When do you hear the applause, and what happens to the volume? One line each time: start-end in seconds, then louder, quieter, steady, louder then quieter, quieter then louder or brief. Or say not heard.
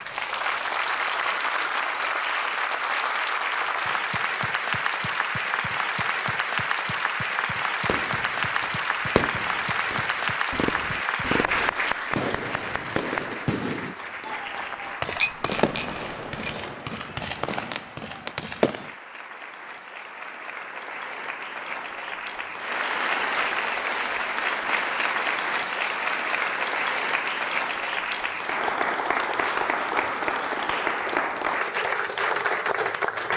0.0-33.3 quieter then louder.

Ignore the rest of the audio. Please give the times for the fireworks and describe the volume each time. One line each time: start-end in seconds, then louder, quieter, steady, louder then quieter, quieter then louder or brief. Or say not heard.
7.8-18.9 steady.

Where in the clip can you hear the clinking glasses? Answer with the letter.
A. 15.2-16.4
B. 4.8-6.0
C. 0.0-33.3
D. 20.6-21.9
A.